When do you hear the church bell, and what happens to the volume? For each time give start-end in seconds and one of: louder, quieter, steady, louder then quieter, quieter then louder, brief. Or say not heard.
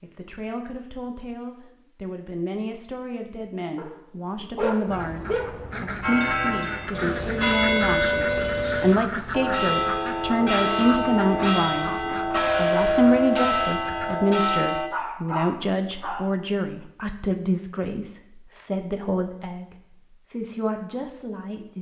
6.0-14.9 steady.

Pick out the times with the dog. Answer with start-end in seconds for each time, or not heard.
3.8-5.7, 14.9-16.3.